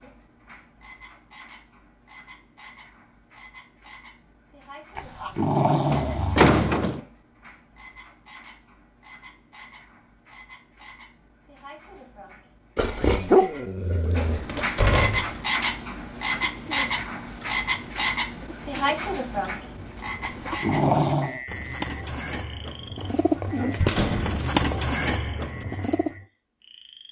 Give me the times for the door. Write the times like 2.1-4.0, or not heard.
5.9-7.0, 14.4-15.3, 23.0-24.9.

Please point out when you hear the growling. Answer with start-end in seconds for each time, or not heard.
5.0-6.5, 12.8-14.5, 20.2-21.4.